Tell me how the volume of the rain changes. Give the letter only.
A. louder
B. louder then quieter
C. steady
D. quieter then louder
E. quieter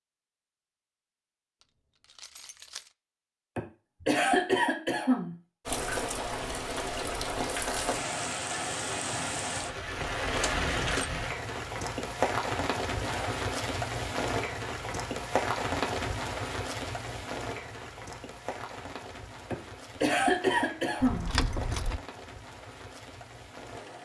E.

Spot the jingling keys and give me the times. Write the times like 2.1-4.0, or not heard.
1.6-2.9, 9.9-11.1, 21.0-22.0.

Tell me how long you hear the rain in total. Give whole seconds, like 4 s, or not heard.
18 s.